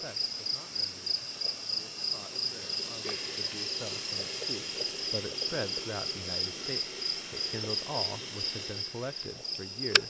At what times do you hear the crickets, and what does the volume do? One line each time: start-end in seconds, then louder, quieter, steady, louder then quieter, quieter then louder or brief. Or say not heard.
0.0-10.0 steady.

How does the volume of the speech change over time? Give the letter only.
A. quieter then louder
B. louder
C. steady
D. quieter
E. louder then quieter
B.